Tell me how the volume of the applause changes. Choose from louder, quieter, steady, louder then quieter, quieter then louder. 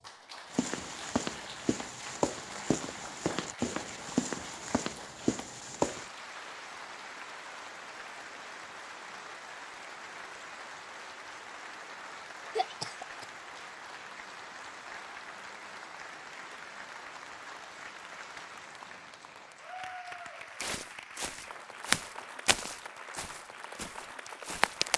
steady.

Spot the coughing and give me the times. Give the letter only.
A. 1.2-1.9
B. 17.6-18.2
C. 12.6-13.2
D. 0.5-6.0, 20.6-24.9
C.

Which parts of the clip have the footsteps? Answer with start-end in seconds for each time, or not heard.
0.5-6.0, 20.6-24.9.